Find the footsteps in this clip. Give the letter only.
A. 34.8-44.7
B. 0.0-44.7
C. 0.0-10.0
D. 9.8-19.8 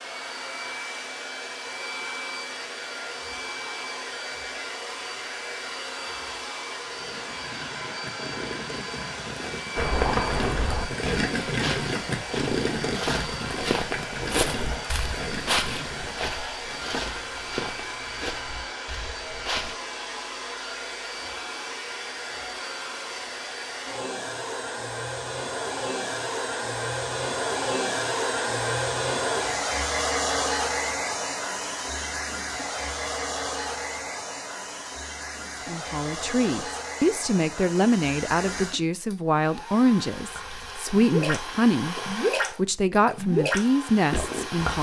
D.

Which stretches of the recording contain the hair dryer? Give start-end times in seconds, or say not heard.
0.0-44.7.